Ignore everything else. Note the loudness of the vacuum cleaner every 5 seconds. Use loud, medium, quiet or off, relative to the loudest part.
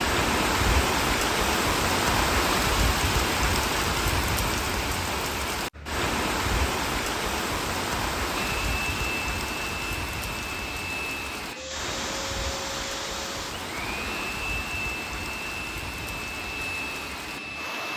off, loud, loud, loud.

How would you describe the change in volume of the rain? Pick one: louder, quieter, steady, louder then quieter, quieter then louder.
quieter.